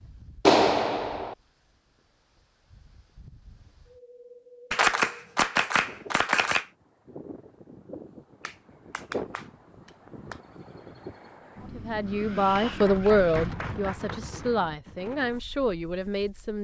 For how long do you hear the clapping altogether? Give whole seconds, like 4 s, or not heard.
6 s.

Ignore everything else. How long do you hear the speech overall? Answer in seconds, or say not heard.
5 s.